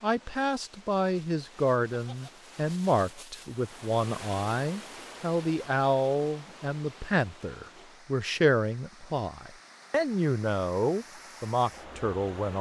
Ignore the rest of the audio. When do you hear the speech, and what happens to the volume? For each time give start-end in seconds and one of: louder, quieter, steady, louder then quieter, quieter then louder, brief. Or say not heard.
0.0-12.5 steady.